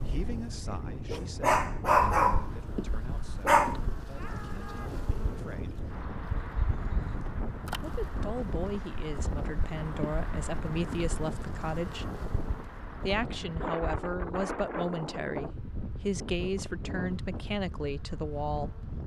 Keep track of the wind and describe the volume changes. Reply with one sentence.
The volume of the wind stays about the same.